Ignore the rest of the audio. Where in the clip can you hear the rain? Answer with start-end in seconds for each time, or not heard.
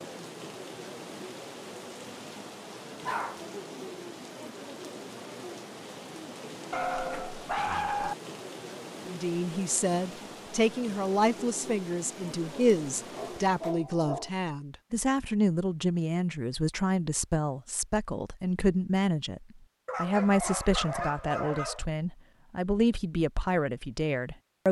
0.0-13.8.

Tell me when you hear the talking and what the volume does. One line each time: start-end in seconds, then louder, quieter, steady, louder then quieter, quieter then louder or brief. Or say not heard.
9.1-24.6 steady.